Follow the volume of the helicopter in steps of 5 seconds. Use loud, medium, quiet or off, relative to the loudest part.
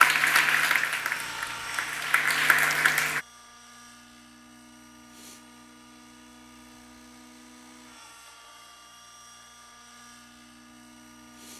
loud, medium, medium.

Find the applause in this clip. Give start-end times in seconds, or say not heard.
0.0-3.2.